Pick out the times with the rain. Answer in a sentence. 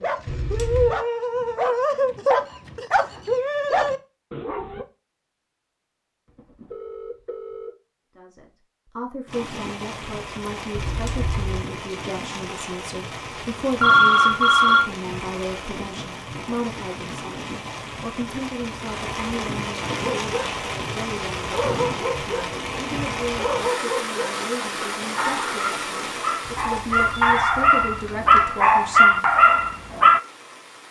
The rain can be heard from 9.2 to 30.8 s.